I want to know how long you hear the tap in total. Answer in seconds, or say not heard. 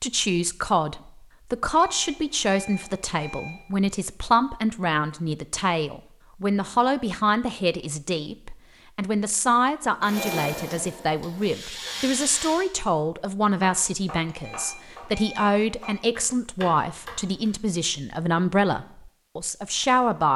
3 s.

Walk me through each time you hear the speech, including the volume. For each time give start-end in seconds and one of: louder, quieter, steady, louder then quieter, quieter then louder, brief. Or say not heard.
0.0-20.3 steady.